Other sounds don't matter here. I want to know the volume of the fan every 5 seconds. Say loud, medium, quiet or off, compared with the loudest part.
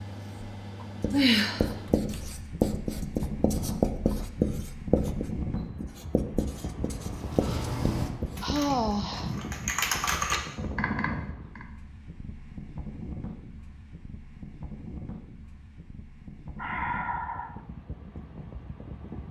loud, loud, loud, medium.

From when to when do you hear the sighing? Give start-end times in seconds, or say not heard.
0.8-2.1, 8.4-9.5, 16.6-17.6.